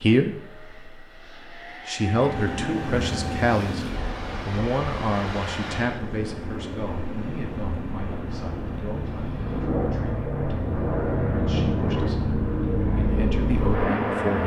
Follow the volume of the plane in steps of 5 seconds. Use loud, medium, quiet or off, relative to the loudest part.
quiet, medium, loud.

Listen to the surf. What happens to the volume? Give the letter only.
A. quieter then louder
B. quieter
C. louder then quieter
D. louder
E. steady
B.